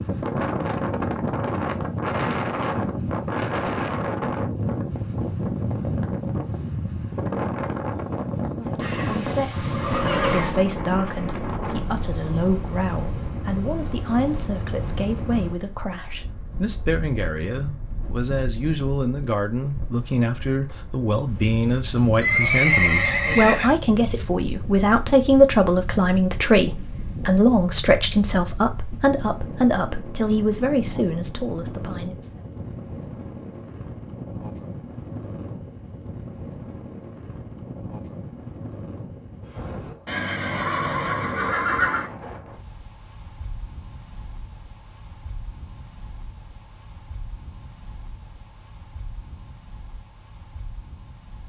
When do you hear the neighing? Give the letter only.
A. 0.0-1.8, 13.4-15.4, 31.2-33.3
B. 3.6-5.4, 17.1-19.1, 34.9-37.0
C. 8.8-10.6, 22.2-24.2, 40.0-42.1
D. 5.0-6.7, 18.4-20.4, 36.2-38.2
C.